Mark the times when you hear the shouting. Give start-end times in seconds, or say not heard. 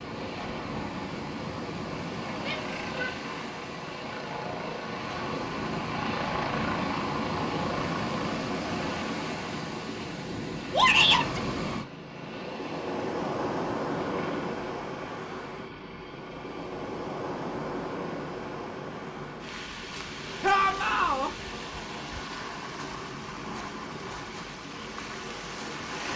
2.4-3.1, 10.7-11.4, 20.4-21.3.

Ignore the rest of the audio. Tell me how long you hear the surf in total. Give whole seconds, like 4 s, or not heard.
26 s.